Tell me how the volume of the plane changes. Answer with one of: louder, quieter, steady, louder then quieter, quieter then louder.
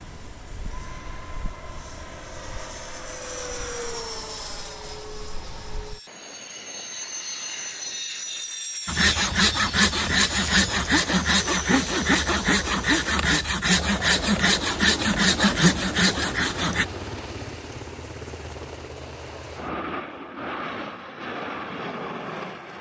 steady.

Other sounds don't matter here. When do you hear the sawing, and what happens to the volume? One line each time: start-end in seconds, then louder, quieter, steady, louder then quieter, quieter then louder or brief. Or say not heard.
8.8-16.9 steady.